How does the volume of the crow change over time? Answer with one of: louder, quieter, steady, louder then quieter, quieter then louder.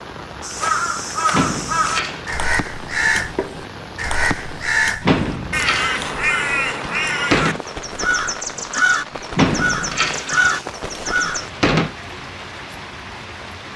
steady.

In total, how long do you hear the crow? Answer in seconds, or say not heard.
11 s.